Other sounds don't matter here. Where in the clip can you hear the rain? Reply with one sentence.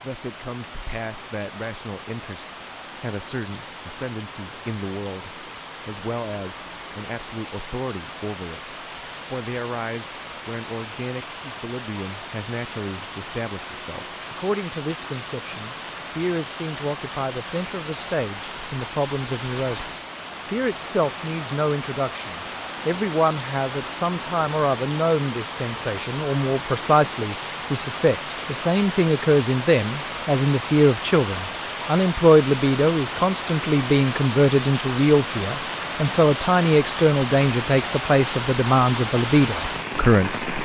The rain can be heard from 0.0 to 40.6 s.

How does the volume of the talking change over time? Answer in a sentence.
The loudness of the talking goes up.